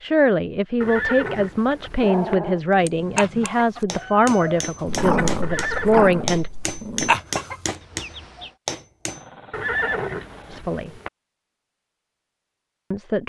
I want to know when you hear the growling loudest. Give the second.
5 s.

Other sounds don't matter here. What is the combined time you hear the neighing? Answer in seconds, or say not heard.
4 s.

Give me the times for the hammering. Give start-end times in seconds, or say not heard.
2.8-9.2.